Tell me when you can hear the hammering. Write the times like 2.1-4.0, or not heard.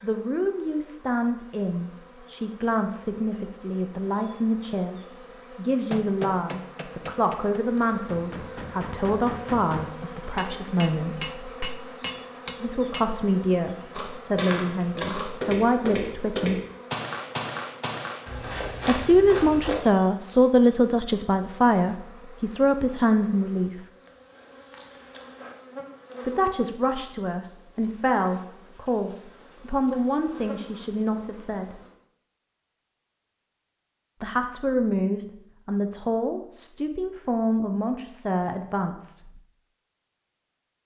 5.9-13.1.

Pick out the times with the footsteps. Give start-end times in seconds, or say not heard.
13.9-19.8.